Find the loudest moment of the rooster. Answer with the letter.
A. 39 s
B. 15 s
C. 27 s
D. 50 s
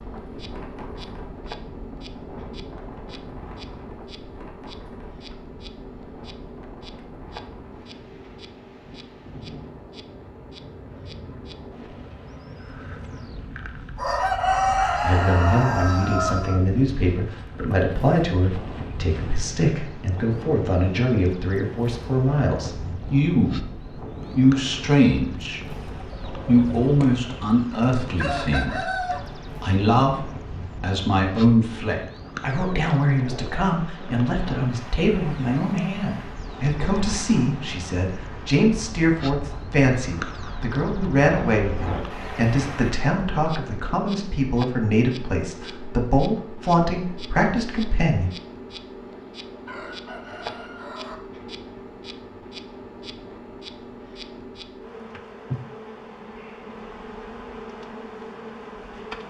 B.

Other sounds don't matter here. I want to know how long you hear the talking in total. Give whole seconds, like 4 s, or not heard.
33 s.